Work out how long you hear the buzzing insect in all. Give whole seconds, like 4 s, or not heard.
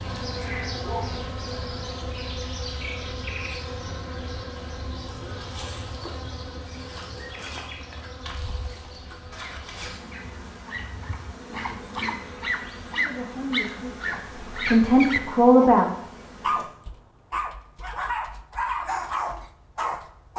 17 s.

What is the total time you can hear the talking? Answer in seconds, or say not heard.
3 s.